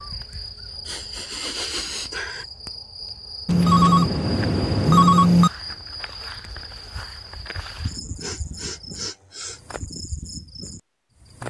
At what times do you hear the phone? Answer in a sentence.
The phone can be heard from 3.5 to 5.5 s.